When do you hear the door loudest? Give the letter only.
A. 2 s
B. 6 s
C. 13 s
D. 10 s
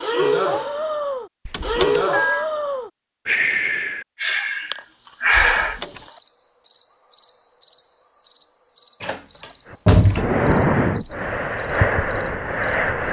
D.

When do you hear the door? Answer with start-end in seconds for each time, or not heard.
1.4-2.0, 5.5-6.0, 9.0-10.4.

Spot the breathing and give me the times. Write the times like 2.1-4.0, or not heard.
0.0-5.8, 9.7-13.0.